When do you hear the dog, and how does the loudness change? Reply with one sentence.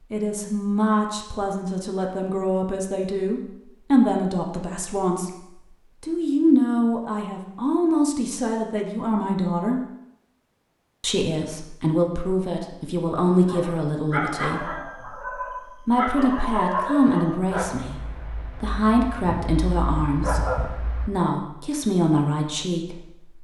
You can hear the dog from 13.4 to 21.3 s, getting quieter then louder.